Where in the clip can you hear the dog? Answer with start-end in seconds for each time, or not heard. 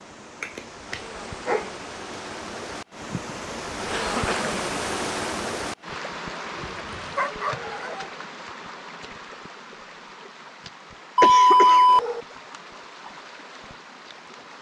0.4-1.7, 6.5-8.1, 11.2-12.2.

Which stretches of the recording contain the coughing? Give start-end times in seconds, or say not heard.
3.1-4.7, 11.2-11.8.